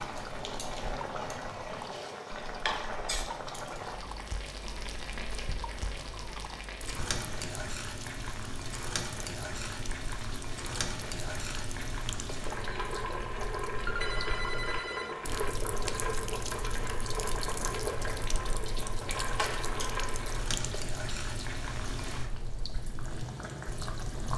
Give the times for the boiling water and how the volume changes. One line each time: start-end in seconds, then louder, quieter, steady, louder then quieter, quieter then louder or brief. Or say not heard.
0.0-24.3 steady.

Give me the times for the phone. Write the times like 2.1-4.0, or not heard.
13.8-15.2.